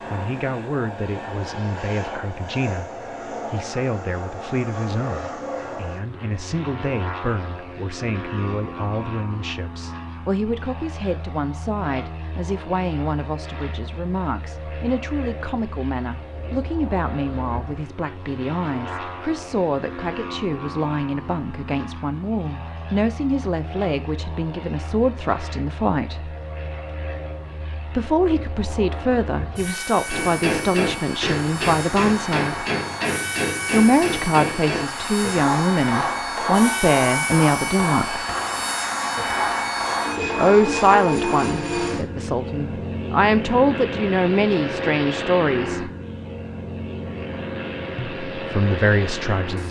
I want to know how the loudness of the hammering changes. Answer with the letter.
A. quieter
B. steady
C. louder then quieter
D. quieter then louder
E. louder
B.